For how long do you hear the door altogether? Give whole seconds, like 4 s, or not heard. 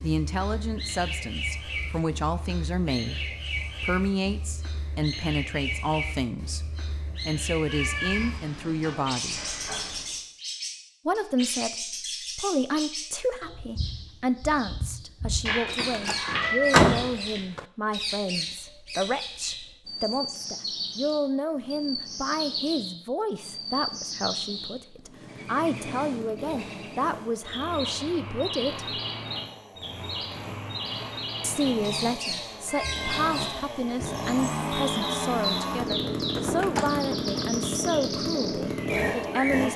3 s.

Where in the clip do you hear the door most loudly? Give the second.
17 s.